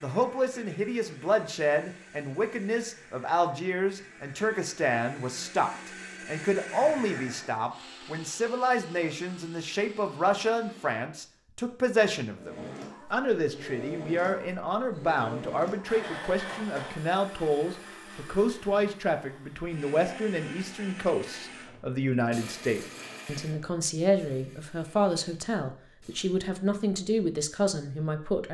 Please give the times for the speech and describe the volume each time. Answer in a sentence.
You can hear the speech from 0.0 to 28.5 s, at a steady volume.